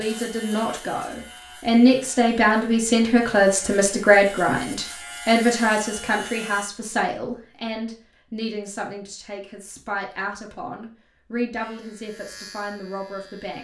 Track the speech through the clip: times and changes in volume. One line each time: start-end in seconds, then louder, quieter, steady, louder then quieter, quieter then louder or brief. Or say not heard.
0.0-13.5 quieter.